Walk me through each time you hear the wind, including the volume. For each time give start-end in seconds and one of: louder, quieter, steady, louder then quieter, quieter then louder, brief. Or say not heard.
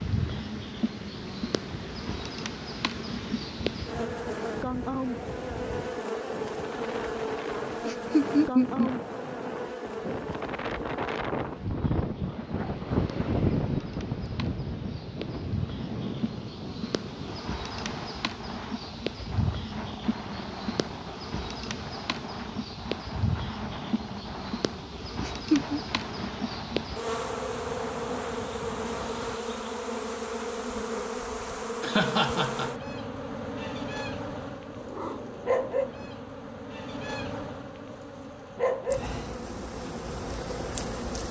0.0-29.4 louder then quieter.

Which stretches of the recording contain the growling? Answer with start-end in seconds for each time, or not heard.
34.6-36.1.